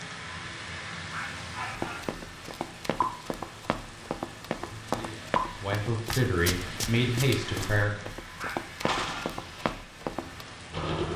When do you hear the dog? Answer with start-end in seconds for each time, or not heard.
1.1-2.1, 8.3-9.4.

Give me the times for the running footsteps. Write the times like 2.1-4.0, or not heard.
1.7-10.4.